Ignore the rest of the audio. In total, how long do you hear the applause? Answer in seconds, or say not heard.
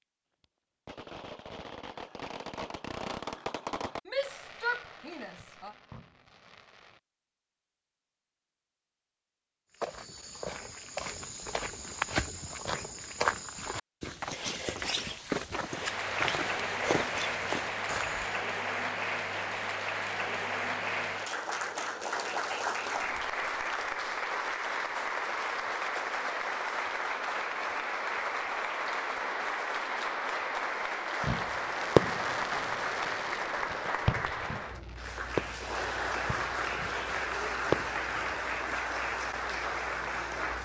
25 s.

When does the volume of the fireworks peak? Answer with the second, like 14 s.
32 s.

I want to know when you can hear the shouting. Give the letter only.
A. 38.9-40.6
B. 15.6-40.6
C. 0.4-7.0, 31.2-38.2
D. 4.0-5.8
D.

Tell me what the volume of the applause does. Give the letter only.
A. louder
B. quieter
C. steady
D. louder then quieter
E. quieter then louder
C.